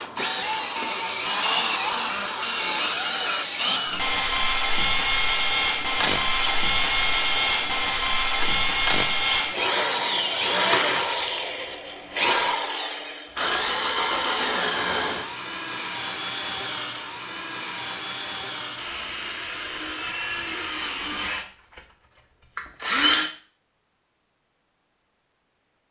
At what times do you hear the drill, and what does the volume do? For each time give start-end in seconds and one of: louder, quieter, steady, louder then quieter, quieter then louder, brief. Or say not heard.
0.0-23.3 quieter.